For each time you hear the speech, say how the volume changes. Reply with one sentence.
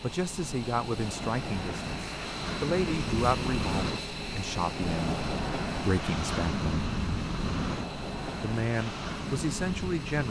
The speech can be heard from 0.0 to 6.9 s, at a steady volume; and briefly from 8.4 to 10.2 s.